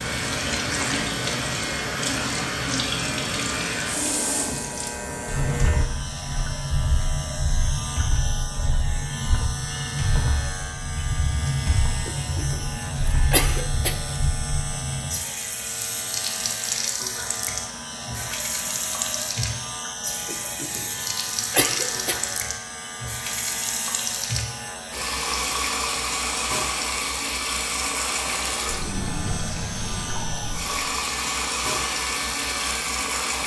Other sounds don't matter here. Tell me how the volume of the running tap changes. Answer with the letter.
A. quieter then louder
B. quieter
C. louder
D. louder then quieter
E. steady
E.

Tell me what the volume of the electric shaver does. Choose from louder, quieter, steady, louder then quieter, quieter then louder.
steady.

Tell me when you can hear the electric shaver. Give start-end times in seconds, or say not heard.
0.0-33.4.